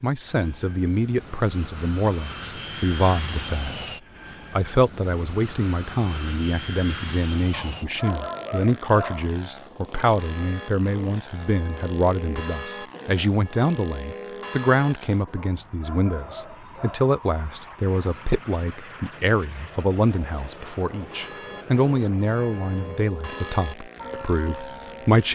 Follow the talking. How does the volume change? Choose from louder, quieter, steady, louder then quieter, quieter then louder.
steady.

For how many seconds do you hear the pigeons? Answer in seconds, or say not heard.
not heard.